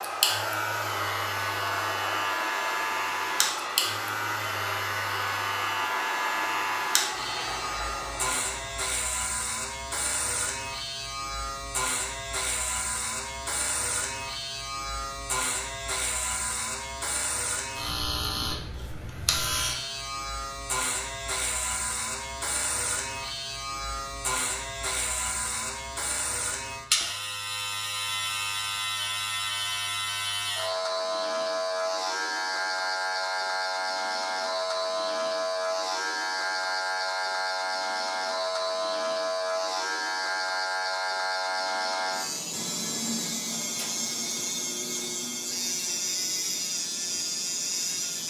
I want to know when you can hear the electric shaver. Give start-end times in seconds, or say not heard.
0.0-48.2.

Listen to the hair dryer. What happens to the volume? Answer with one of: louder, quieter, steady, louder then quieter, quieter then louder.
steady.